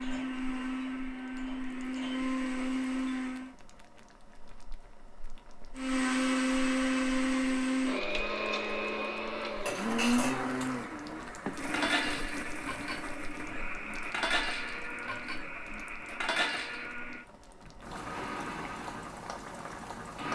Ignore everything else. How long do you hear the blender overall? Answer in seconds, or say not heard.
18 s.